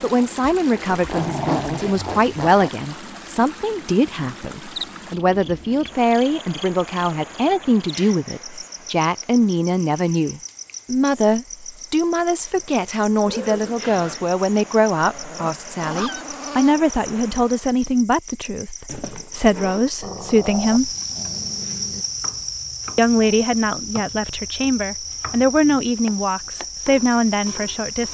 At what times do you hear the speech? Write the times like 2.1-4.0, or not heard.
0.0-20.9, 22.9-28.0.